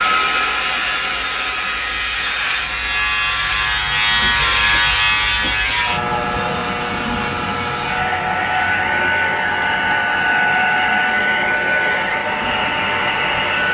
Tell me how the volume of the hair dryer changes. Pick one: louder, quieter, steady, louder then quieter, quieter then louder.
quieter then louder.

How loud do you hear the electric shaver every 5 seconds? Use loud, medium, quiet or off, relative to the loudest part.
loud, loud, medium.